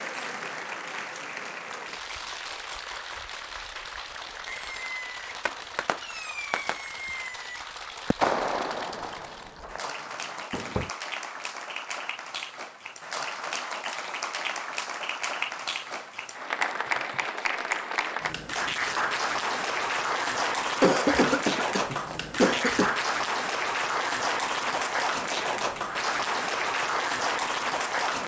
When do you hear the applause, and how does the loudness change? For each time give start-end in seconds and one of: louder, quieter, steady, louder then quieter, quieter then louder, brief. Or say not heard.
0.0-28.2 louder.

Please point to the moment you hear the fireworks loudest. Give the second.
8 s.